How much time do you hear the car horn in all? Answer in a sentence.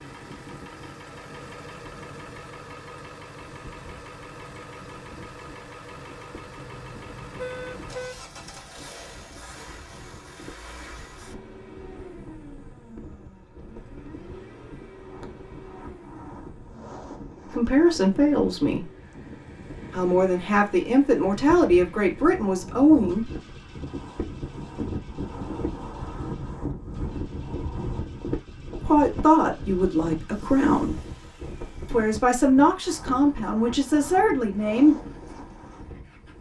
You can hear the car horn for 2 seconds altogether.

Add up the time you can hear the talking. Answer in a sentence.
The talking can be heard for 10 seconds in total.